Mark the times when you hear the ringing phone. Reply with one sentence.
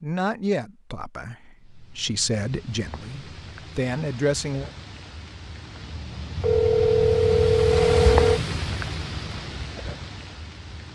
The ringing phone can be heard from 6.3 to 8.4 s.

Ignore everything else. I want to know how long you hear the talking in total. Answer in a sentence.
You can hear the talking for 5 seconds altogether.